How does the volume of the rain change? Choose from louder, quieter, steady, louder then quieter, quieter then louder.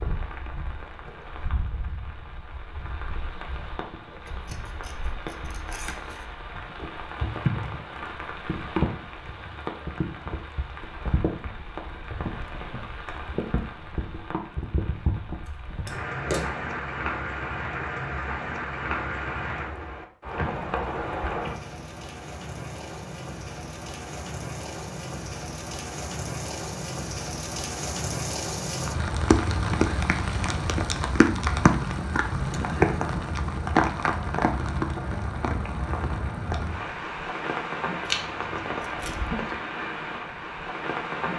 louder.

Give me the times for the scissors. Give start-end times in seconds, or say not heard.
4.2-6.2, 15.4-16.8, 38.0-39.4.